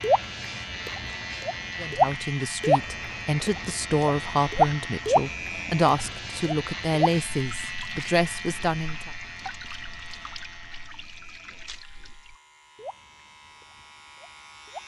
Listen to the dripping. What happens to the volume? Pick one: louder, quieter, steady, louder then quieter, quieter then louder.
quieter.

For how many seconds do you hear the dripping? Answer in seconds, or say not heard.
15 s.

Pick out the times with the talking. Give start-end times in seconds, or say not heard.
1.8-9.1.